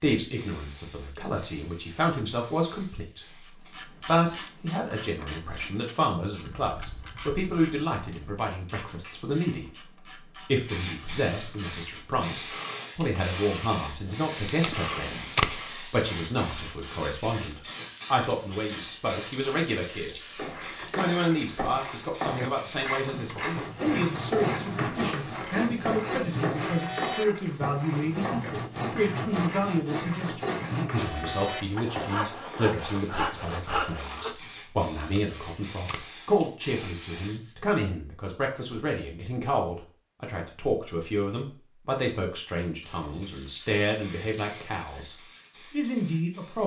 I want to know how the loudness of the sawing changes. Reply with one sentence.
The volume of the sawing stays about the same.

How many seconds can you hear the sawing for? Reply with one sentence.
The sawing can be heard for 11 seconds in total.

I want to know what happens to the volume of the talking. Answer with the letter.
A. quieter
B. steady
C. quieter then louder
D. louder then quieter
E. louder
B.